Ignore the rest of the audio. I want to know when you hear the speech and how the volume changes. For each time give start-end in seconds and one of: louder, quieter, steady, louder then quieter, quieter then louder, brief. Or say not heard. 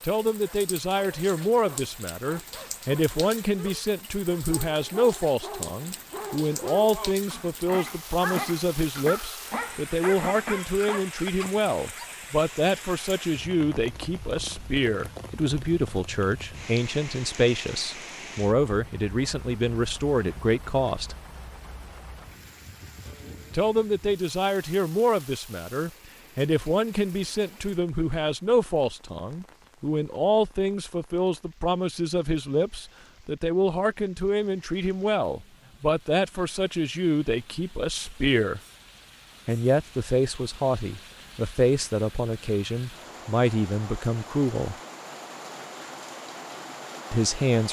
0.0-21.1 steady
23.5-38.6 steady
39.5-44.8 steady
47.1-47.6 brief.